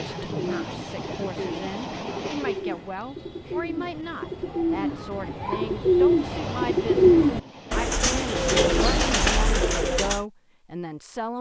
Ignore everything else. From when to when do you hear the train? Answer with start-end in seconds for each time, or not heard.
0.0-2.6, 6.2-9.4.